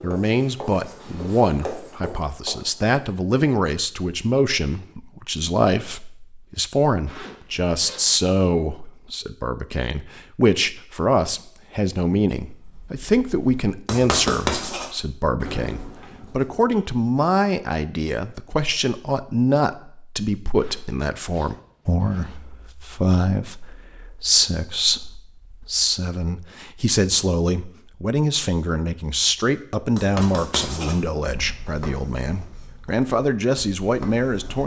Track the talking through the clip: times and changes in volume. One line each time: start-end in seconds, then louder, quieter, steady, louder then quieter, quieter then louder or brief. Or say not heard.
0.0-34.6 steady.